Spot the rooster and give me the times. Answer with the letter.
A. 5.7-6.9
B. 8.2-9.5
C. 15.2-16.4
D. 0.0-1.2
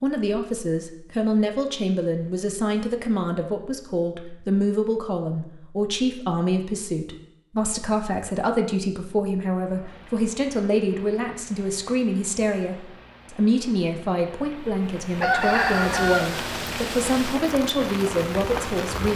C.